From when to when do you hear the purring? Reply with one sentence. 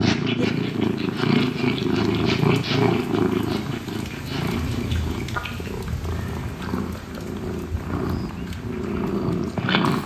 You can hear the purring from 0.0 to 10.0 s.